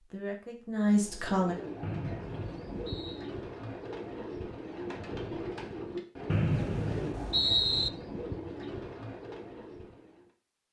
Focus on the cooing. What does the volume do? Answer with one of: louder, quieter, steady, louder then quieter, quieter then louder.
steady.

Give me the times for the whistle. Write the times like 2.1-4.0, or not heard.
1.8-3.3, 6.3-7.9.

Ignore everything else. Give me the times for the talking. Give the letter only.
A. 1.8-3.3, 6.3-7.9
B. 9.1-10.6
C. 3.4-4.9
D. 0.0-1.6
D.